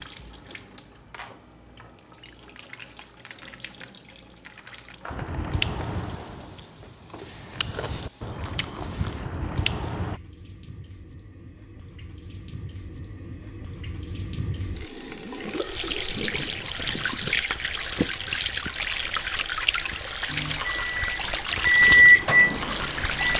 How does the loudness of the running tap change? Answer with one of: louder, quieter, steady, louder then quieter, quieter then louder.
louder.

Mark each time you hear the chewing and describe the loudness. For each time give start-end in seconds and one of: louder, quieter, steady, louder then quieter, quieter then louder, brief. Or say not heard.
5.1-10.2 quieter then louder.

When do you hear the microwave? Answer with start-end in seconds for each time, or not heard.
20.2-23.3.